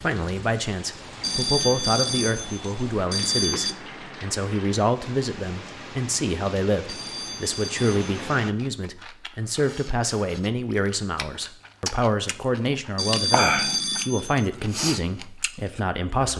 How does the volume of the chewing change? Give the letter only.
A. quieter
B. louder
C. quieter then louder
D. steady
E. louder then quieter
E.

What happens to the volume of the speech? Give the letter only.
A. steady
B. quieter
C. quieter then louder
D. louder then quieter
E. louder
A.